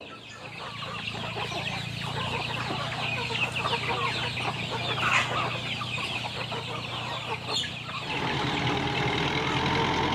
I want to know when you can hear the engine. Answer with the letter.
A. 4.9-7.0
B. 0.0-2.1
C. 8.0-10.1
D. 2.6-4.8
C.